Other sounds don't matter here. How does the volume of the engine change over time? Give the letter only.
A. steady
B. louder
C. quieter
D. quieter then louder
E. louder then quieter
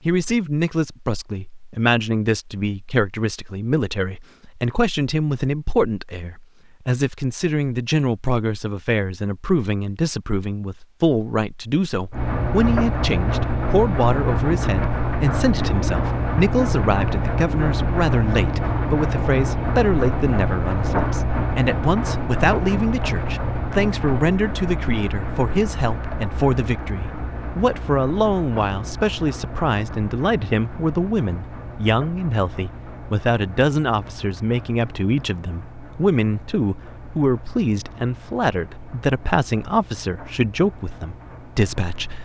C.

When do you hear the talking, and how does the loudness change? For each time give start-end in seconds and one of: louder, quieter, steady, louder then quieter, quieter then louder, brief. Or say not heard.
0.1-42.2 steady.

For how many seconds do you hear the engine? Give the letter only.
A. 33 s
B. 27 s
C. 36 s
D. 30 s
D.